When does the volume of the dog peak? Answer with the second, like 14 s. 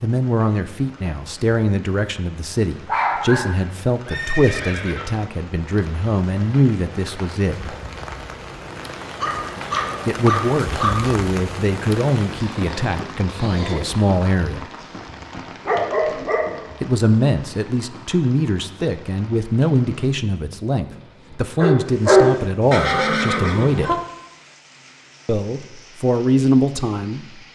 22 s.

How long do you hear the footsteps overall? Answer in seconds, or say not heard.
not heard.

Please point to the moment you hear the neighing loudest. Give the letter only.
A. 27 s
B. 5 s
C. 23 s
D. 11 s
C.